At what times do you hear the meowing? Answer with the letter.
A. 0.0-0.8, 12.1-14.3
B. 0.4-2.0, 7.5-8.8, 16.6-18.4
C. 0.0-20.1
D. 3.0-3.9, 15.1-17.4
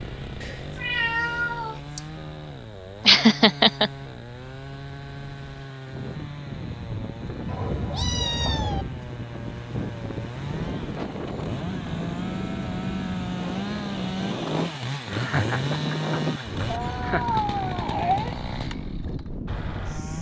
B.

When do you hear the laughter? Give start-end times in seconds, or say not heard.
3.0-3.9, 15.1-17.4.